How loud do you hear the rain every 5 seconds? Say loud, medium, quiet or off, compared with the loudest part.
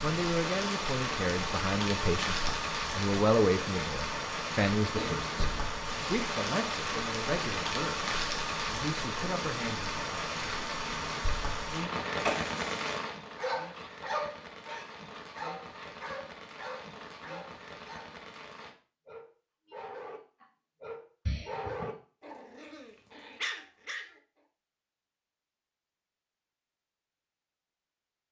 loud, loud, loud, quiet, off, off.